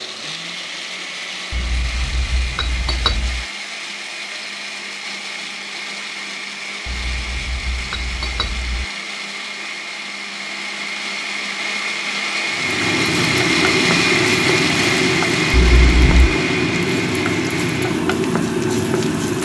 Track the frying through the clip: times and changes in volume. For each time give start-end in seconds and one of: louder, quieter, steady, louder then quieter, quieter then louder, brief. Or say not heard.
12.5-19.4 steady.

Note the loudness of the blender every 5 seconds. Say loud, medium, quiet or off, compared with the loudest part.
medium, medium, loud, loud.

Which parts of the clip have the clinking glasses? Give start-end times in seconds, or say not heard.
1.5-3.5, 6.8-8.8, 15.5-16.3.